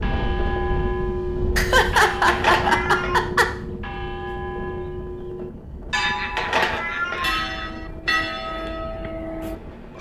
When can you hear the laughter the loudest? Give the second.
2 s.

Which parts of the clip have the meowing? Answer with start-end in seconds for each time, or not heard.
2.2-3.2, 6.3-7.3.